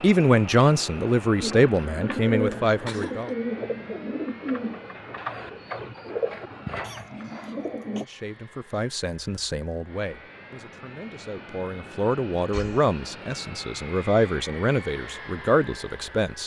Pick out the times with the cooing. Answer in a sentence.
The cooing can be heard from 1.4 to 8.1 s.